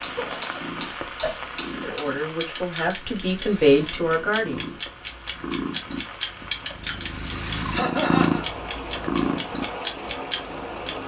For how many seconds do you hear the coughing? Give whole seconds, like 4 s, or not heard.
2 s.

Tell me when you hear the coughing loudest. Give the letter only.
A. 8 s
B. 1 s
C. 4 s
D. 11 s
A.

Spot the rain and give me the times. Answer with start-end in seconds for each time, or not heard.
0.0-11.0.